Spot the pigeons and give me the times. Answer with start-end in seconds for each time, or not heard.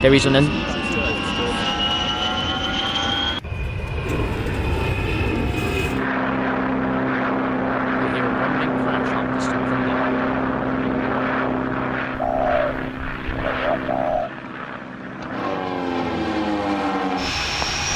4.0-6.1, 12.1-14.3.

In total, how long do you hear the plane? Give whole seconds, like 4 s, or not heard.
18 s.